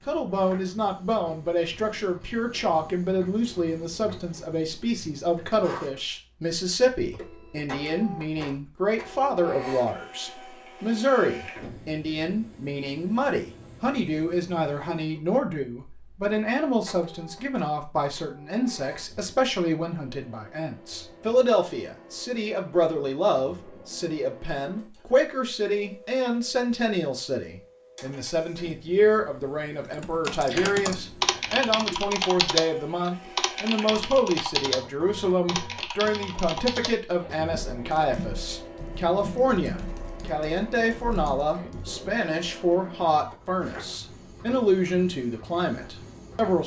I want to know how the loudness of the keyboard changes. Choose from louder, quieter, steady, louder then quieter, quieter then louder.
quieter.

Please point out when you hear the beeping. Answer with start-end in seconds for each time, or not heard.
not heard.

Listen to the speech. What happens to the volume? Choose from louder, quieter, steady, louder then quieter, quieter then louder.
steady.